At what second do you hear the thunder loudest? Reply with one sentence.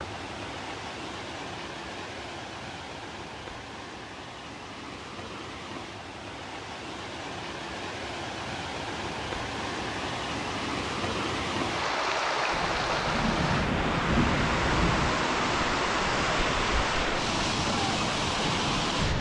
The loudest moment of the thunder is at 14 seconds.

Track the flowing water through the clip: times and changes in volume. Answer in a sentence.
You can hear the flowing water from 0.0 to 19.1 s, getting louder.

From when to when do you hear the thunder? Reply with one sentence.
You can hear the thunder from 12.5 to 15.2 s.